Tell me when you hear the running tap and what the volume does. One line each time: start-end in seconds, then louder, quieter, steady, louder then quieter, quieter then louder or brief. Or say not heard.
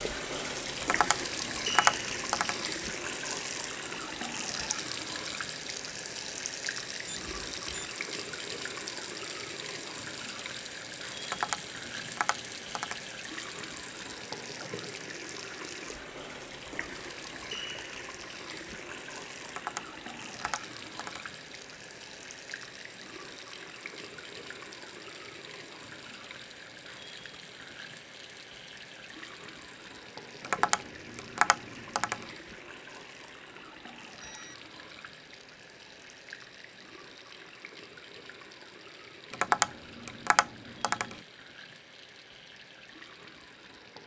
0.0-44.0 quieter.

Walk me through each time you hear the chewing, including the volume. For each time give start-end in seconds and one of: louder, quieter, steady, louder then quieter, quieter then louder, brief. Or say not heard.
not heard.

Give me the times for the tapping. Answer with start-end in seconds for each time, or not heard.
0.8-2.7, 11.2-13.1, 19.4-21.4, 30.4-32.3, 39.3-41.2.